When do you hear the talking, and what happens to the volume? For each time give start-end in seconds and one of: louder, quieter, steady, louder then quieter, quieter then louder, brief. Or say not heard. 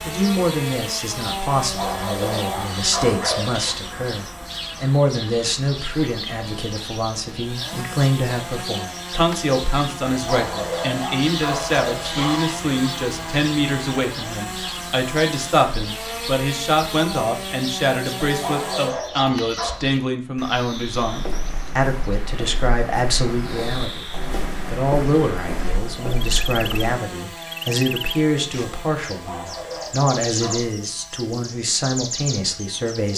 0.0-33.1 steady.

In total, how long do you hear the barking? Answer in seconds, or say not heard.
8 s.